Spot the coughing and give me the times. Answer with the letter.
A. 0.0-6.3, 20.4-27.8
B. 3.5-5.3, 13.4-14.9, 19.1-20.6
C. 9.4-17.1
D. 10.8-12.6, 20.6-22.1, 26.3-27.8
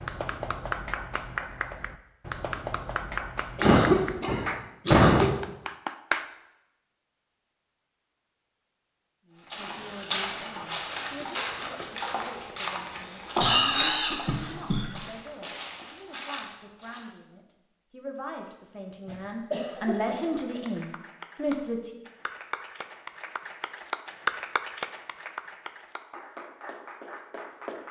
B.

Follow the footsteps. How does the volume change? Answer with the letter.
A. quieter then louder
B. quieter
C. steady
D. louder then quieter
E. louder
B.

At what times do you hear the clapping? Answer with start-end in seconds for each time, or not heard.
0.0-6.3, 20.4-27.8.